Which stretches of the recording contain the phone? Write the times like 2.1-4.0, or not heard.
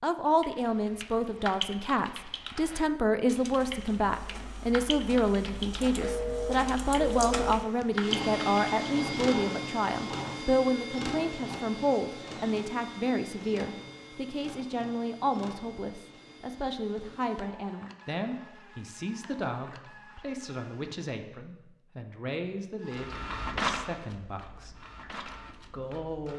6.0-7.6.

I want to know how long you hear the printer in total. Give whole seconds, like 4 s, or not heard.
21 s.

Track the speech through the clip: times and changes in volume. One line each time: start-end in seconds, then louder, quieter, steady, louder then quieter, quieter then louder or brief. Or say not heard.
0.0-26.3 quieter.